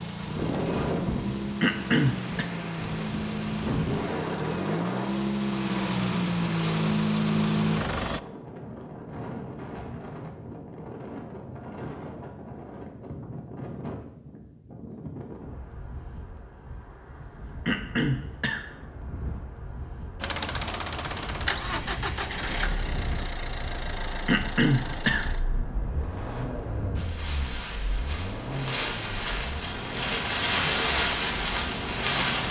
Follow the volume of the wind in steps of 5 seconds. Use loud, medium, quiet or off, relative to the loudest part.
medium, quiet, quiet, quiet, quiet, medium, loud.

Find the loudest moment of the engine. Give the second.
7 s.